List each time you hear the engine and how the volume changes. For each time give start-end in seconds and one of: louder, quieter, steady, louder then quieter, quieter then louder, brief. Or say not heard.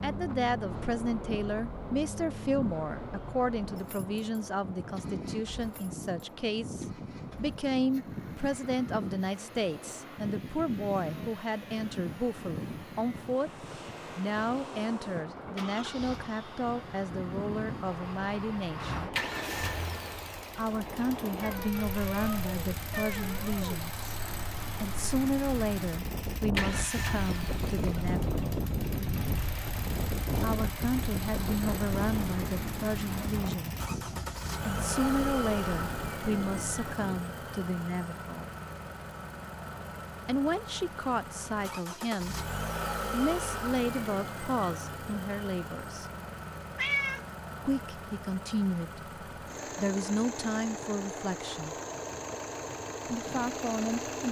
0.0-54.2 louder.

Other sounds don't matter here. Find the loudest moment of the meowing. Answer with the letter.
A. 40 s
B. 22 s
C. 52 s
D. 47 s
D.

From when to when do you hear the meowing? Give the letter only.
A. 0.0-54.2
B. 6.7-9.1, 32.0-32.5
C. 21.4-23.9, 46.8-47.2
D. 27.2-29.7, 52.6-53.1
C.